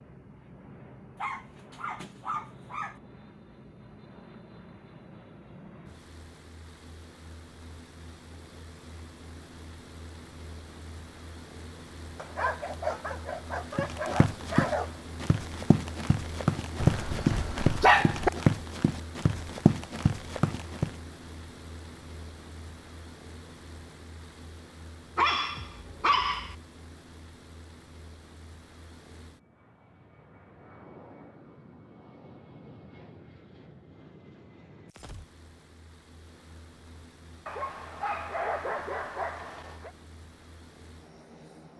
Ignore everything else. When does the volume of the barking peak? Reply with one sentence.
The volume of the barking peaks at 18 seconds.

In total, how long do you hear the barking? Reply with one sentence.
You can hear the barking for 10 seconds altogether.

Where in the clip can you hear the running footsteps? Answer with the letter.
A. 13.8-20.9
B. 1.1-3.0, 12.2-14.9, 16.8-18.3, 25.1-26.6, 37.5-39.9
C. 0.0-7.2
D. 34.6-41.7
A.